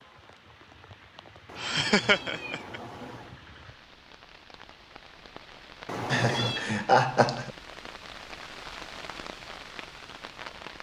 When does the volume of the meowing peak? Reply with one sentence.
The loudest moment of the meowing is at 6 seconds.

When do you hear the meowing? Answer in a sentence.
You can hear the meowing from 1.4 to 3.4 s and from 5.8 to 6.7 s.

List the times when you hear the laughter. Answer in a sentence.
You can hear the laughter from 1.6 to 2.8 s and from 6.1 to 7.5 s.